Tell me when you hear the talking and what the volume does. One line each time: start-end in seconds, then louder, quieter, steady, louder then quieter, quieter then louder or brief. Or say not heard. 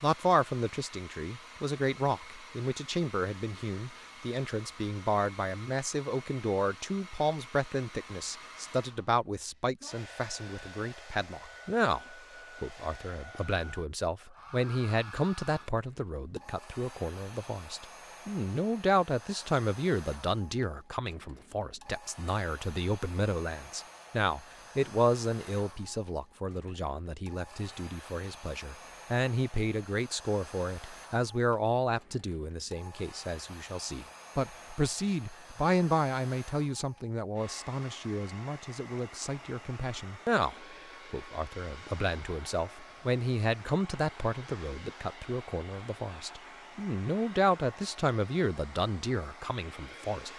0.0-50.3 steady.